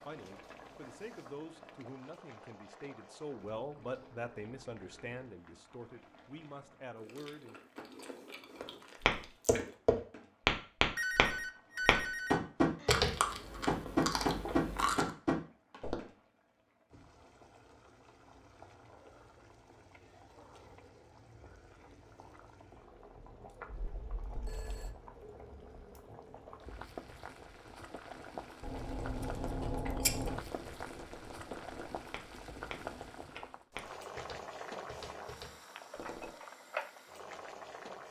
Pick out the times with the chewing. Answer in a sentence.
The chewing can be heard from 7.0 to 9.7 s, from 12.8 to 15.1 s and from 28.6 to 30.4 s.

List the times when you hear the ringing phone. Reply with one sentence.
You can hear the ringing phone from 10.9 to 12.9 s and from 23.6 to 24.9 s.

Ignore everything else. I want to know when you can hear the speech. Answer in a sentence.
The speech can be heard from 0.1 to 7.5 s.